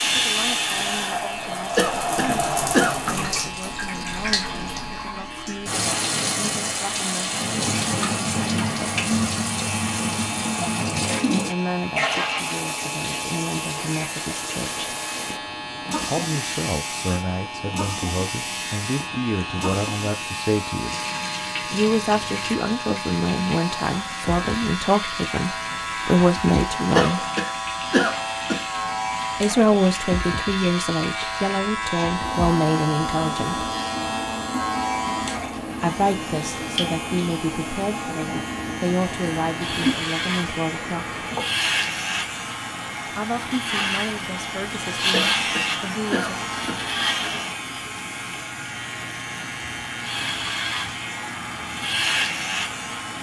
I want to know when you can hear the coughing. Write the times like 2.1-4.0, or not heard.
1.8-3.0, 26.9-28.6, 45.1-46.9.